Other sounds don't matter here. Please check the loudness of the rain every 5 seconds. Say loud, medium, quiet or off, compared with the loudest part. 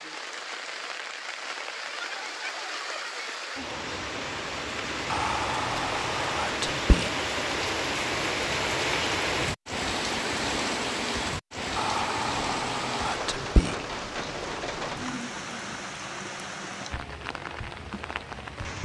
medium, loud, loud, medium.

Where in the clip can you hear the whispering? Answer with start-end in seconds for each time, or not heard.
5.1-7.1, 11.8-13.8.